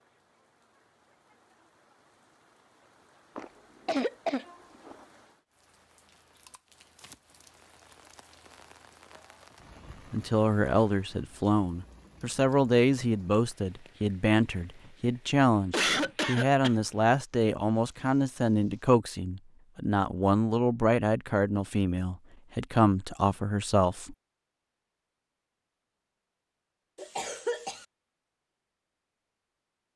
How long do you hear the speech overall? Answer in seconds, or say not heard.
14 s.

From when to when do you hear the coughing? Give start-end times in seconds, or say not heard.
3.4-5.0, 15.7-16.8, 26.9-27.9.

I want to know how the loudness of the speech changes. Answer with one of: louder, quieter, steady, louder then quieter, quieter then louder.
steady.